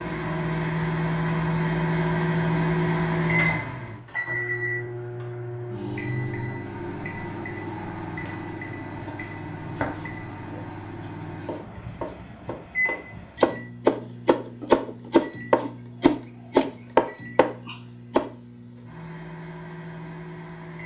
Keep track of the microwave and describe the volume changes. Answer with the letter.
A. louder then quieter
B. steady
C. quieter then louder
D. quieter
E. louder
D.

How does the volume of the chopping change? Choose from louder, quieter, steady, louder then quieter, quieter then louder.
louder.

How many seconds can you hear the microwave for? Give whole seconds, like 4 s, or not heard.
21 s.